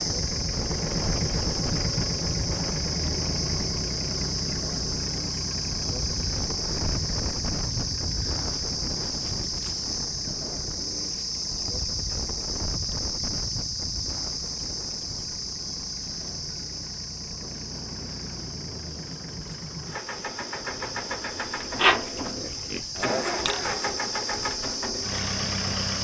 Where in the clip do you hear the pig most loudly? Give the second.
22 s.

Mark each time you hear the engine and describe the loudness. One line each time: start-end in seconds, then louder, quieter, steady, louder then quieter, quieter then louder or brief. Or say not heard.
0.0-26.0 quieter then louder.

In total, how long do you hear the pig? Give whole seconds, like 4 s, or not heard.
2 s.